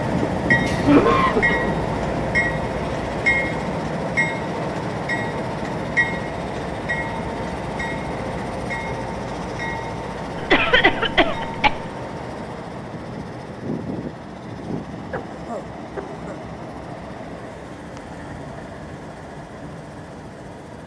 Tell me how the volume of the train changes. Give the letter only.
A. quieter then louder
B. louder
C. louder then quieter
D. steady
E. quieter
E.